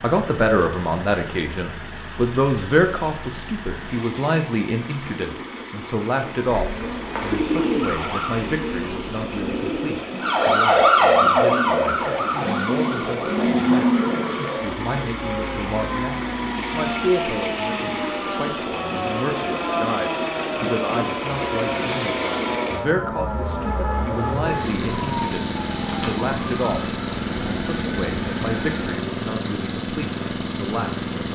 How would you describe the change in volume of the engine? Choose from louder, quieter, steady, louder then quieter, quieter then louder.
louder.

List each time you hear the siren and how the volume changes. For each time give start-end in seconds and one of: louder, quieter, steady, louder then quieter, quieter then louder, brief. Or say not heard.
6.7-8.3 brief
10.2-28.9 quieter.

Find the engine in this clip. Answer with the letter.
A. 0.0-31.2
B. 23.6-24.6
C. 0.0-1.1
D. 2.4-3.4
A.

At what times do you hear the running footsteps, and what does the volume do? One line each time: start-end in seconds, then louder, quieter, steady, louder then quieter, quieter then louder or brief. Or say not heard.
not heard.